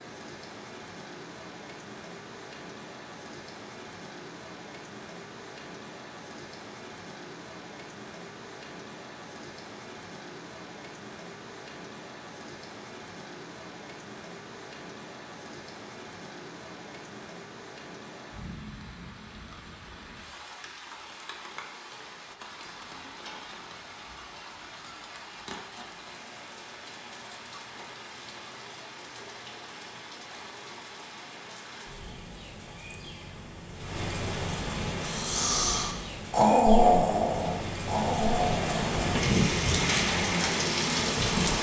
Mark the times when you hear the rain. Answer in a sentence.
The rain can be heard from 0.0 to 41.5 s.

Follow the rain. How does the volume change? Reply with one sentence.
The volume of the rain goes up.